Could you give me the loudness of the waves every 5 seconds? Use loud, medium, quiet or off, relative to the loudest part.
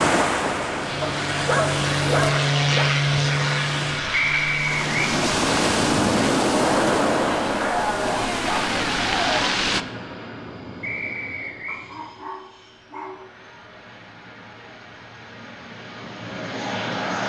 medium, loud, off, off.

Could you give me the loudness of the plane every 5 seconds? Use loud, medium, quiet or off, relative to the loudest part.
loud, medium, quiet, medium.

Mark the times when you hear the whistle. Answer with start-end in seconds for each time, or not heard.
4.1-4.9, 10.8-11.8.